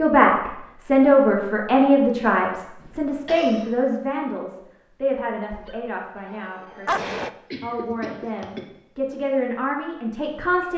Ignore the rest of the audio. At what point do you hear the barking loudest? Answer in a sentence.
The loudest moment of the barking is at 7 seconds.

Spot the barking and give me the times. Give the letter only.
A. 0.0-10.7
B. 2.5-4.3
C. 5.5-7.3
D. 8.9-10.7
C.